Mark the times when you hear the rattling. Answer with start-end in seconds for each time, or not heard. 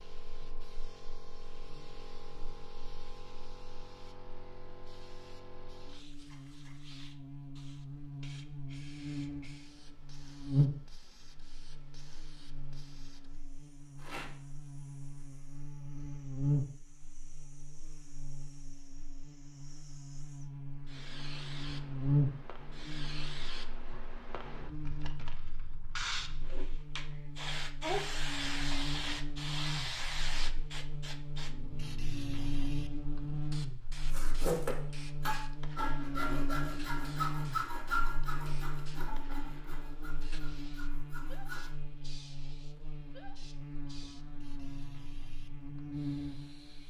13.9-14.4.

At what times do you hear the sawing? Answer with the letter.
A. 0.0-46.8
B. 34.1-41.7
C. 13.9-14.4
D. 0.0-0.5
B.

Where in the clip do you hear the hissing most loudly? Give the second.
28 s.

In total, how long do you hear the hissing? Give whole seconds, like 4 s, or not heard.
47 s.